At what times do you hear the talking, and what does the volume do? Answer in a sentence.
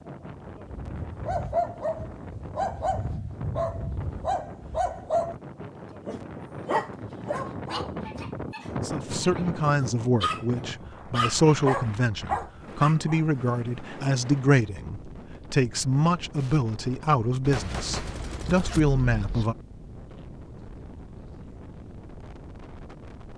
You can hear the talking from 8.8 to 19.6 s, at a steady volume.